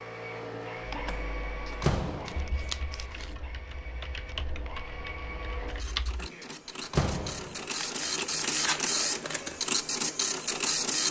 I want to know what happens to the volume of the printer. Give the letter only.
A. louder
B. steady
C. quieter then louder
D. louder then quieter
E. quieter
C.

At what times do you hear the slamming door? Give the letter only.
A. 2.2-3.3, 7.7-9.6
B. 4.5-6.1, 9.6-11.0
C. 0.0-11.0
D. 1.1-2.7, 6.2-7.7
D.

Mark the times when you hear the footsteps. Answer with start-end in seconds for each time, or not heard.
not heard.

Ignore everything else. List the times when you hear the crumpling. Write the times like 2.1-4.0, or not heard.
2.2-3.3, 7.7-9.6.